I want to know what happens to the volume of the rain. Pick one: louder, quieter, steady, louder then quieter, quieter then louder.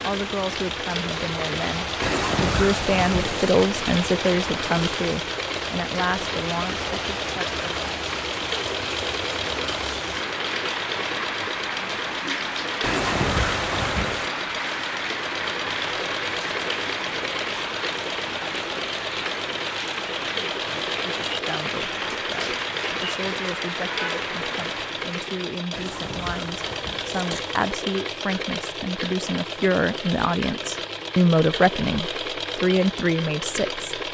steady.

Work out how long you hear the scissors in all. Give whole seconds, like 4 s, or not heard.
5 s.